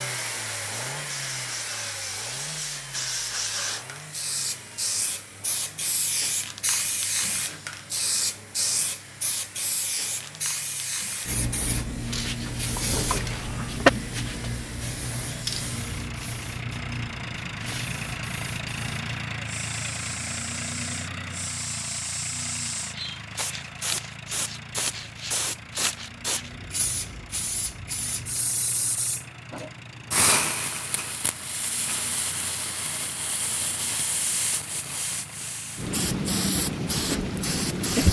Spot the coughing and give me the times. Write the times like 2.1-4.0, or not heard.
12.9-13.9.